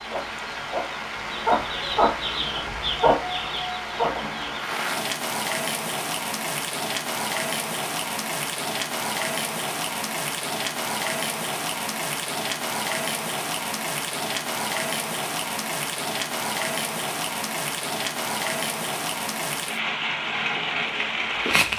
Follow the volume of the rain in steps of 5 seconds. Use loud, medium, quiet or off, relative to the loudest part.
medium, loud, loud, loud, loud.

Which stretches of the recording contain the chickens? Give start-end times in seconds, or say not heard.
0.0-4.7.